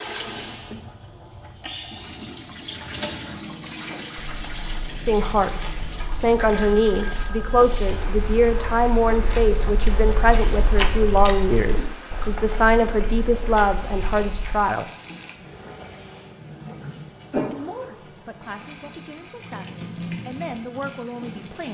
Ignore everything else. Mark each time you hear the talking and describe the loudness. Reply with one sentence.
The talking can be heard from 5.0 to 14.9 s, at a steady volume; and from 17.5 to 21.6 s, getting louder.